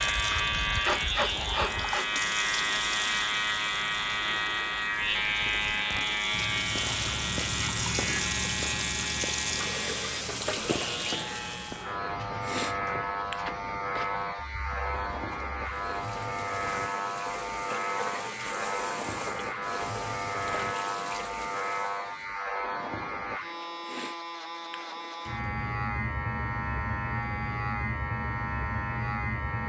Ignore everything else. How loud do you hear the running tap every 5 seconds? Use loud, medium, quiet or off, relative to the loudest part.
loud, loud, loud, medium, medium, off.